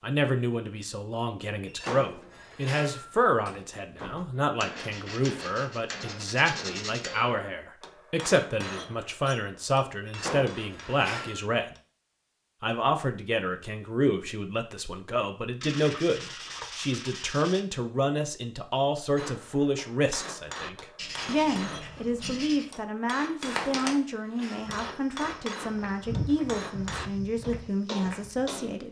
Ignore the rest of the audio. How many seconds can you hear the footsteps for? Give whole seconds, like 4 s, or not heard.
5 s.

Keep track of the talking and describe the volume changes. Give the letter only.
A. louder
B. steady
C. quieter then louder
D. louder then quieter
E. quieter
B.